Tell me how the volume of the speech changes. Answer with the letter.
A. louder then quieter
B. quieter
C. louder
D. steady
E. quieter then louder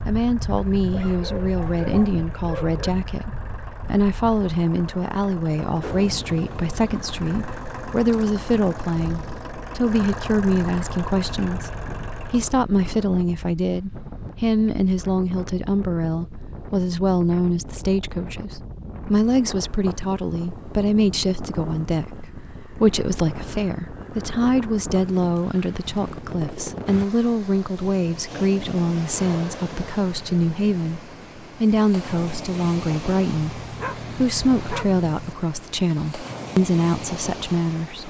D.